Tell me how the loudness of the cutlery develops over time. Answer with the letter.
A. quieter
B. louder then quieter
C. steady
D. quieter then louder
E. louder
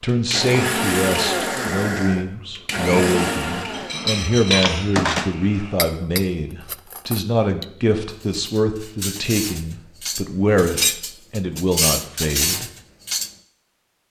D.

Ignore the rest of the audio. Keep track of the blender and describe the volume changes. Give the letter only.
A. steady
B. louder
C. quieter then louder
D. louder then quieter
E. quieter
E.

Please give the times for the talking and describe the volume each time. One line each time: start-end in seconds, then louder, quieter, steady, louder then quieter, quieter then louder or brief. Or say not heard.
0.0-12.7 steady.